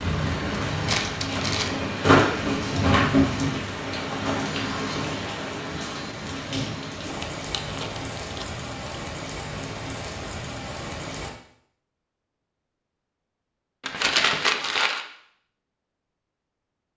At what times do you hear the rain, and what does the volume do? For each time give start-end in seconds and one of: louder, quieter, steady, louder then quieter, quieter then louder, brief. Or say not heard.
0.0-11.3 quieter.